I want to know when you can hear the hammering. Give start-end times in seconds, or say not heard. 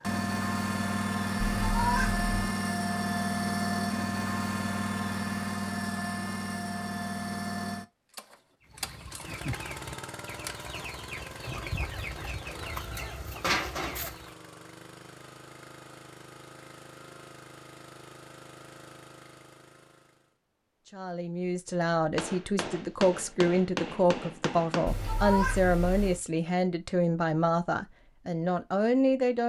22.1-24.9.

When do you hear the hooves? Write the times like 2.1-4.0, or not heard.
not heard.